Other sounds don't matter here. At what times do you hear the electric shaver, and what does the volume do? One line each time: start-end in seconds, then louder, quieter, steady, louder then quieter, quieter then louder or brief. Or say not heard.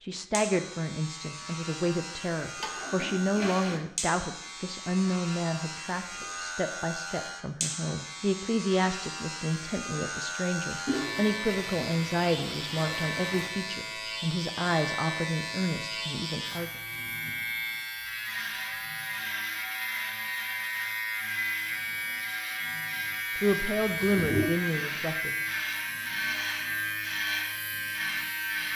0.3-28.7 louder.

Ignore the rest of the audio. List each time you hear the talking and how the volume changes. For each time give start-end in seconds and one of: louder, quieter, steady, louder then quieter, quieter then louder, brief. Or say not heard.
0.0-16.7 steady
23.4-25.4 brief.